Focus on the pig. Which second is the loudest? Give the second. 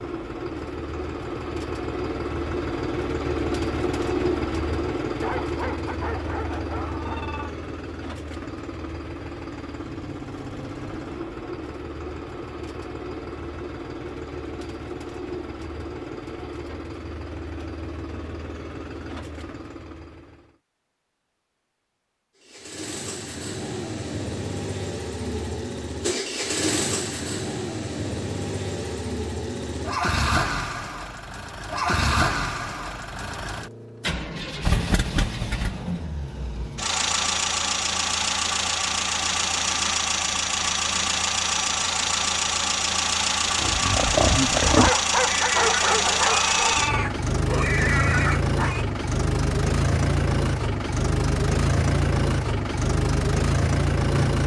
45 s.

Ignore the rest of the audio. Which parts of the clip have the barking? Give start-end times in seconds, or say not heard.
5.2-7.5, 44.8-47.1.